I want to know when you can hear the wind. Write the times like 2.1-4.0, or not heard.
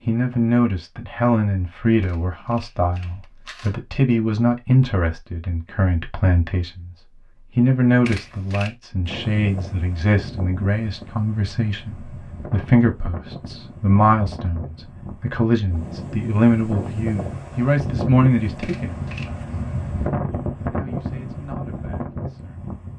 9.1-22.9.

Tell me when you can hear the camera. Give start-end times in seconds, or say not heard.
2.0-3.8, 8.1-8.8, 18.6-19.4.